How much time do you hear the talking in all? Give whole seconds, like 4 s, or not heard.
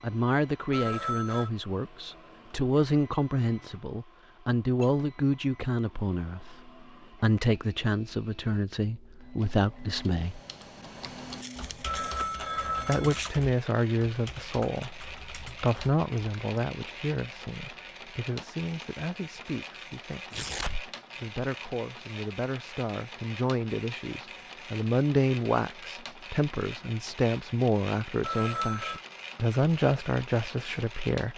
28 s.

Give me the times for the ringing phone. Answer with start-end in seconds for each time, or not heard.
0.7-1.5, 11.8-13.2, 28.2-29.0.